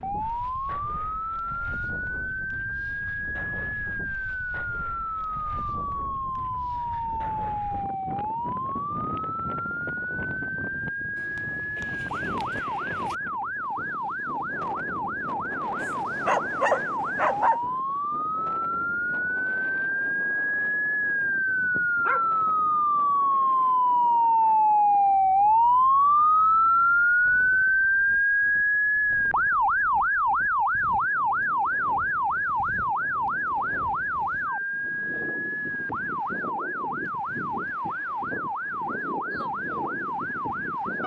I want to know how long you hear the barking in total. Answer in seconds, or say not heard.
3 s.